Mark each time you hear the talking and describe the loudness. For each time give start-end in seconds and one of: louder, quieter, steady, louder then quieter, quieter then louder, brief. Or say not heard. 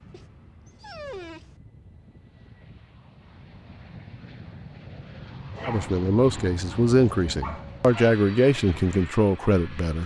5.7-10.0 steady.